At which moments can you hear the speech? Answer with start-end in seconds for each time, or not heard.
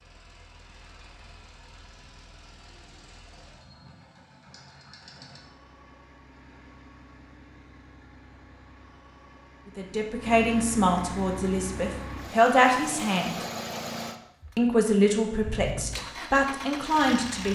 9.8-13.4, 14.6-17.4.